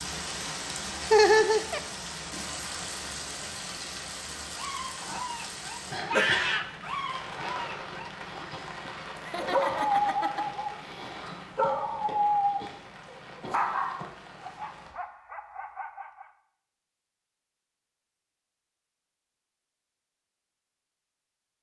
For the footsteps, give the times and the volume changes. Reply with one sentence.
You can't hear the footsteps here.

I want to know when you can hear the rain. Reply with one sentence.
You can hear the rain from 0.0 to 14.9 s.